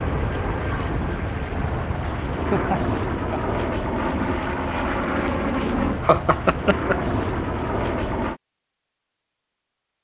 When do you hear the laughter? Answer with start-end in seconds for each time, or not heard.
2.2-3.4, 5.6-7.0.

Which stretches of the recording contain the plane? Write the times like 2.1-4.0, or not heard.
0.0-8.4.